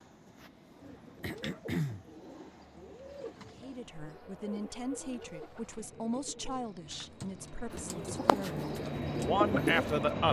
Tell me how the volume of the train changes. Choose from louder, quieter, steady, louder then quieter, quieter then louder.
louder.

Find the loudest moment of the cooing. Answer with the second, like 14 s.
10 s.